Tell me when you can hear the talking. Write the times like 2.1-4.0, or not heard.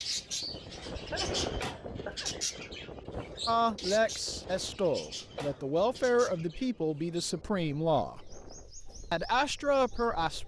3.5-8.2, 9.1-10.4.